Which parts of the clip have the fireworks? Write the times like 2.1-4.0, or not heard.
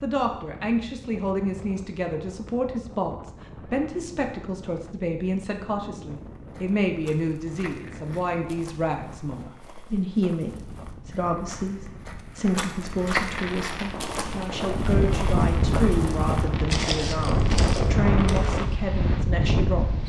13.3-18.6.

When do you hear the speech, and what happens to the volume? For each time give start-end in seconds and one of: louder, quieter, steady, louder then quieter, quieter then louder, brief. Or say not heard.
0.0-20.0 steady.